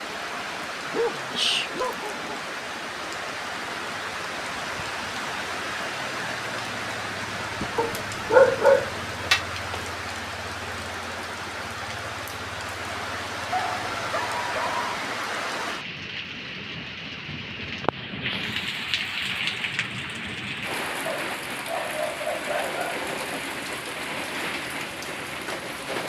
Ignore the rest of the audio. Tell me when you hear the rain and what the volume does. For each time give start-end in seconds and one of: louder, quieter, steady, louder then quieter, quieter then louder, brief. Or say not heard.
0.0-26.0 steady.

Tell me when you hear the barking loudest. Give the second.
9 s.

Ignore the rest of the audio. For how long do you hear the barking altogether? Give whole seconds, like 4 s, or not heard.
7 s.